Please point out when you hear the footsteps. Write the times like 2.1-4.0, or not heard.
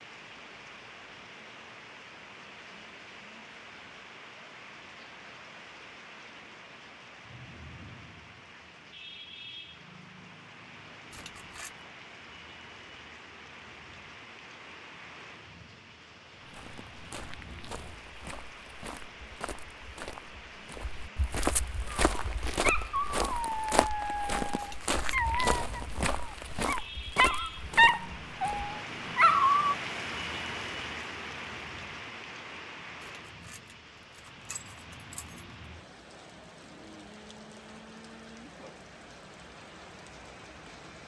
16.4-28.8.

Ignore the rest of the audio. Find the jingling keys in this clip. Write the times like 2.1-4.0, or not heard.
11.1-11.8, 24.6-25.2, 33.2-35.5.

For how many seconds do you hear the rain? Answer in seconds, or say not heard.
41 s.